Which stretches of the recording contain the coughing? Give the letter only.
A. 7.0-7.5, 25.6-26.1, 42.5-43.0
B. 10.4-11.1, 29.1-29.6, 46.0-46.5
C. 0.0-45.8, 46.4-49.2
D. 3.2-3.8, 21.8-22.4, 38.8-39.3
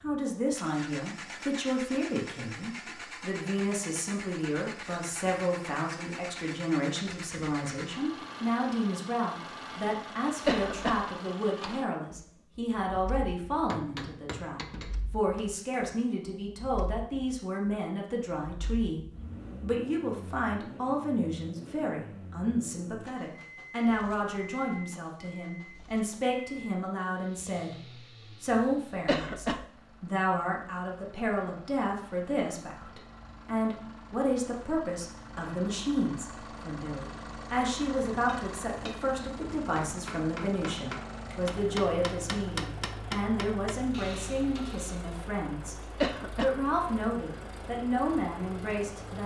B.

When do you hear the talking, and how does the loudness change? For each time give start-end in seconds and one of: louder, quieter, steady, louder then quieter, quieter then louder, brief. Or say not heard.
0.0-45.8 steady
46.4-49.2 brief.